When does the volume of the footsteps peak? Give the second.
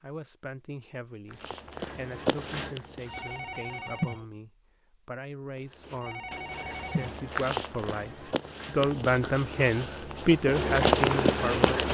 11 s.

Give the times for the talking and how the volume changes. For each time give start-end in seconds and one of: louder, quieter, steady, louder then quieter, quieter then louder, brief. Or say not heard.
0.0-11.8 louder.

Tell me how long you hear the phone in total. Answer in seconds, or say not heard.
2 s.